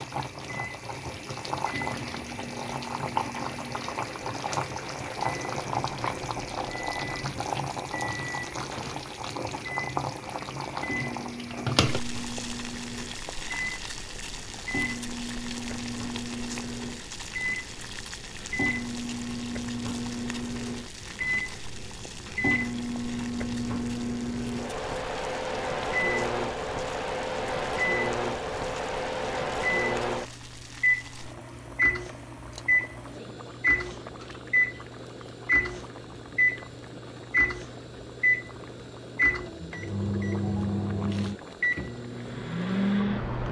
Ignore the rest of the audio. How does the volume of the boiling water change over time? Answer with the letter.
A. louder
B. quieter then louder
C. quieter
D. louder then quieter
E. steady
C.